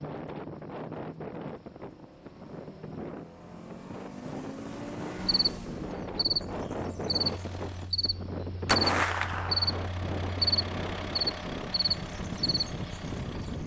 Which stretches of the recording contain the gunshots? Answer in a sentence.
You can hear the gunshots from 8.7 to 9.8 s.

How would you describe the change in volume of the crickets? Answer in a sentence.
The loudness of the crickets goes up, then down.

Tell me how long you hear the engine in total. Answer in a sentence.
The engine can be heard for 12 seconds in total.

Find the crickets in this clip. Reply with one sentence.
The crickets can be heard from 5.2 to 13.6 s.